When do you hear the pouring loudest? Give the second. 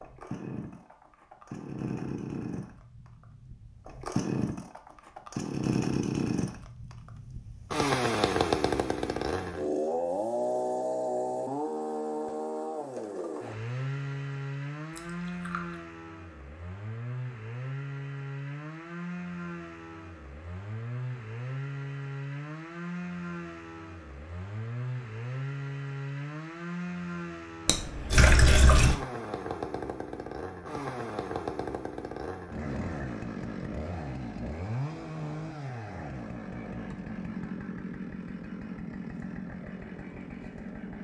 28 s.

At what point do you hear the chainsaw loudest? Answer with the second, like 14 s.
8 s.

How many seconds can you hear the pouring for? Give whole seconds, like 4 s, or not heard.
2 s.